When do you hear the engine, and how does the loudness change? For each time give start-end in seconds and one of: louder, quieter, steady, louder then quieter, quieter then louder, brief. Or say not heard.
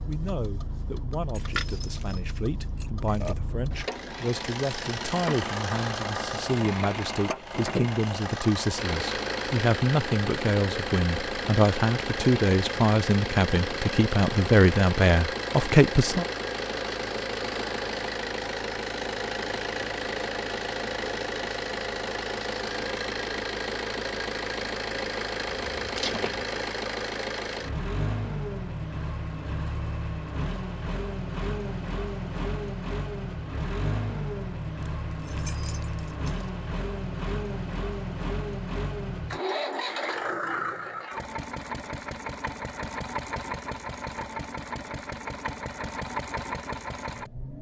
0.0-47.5 steady.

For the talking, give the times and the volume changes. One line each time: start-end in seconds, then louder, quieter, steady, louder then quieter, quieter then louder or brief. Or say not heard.
0.1-16.2 louder.